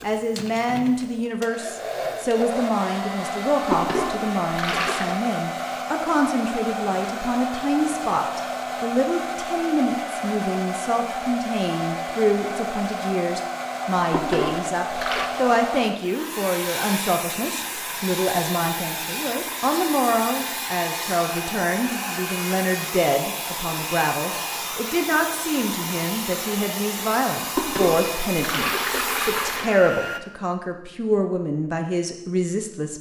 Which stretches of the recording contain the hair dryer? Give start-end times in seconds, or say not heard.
0.0-30.2.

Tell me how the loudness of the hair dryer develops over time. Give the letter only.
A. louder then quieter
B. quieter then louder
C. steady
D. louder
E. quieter
C.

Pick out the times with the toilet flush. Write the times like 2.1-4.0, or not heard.
3.7-5.2, 14.1-15.3, 27.6-29.8.